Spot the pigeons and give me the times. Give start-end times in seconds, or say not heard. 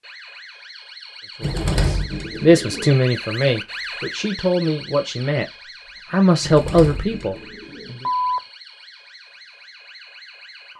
1.4-3.0, 6.4-8.0.